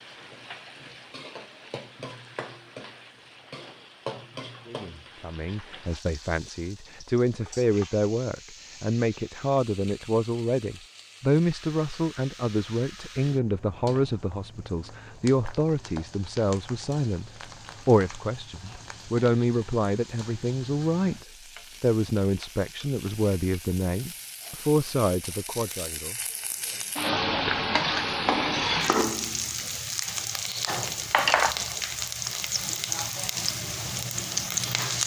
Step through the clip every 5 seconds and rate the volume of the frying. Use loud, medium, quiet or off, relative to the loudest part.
quiet, quiet, quiet, quiet, quiet, loud, loud.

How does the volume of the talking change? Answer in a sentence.
The loudness of the talking stays about the same.